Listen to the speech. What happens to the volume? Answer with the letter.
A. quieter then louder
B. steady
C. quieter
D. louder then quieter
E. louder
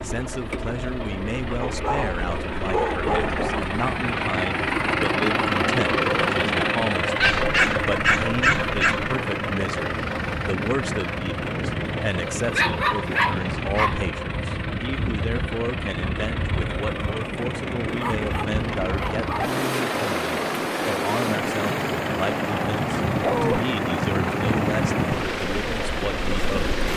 B.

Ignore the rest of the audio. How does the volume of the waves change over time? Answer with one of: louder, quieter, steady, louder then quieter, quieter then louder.
louder.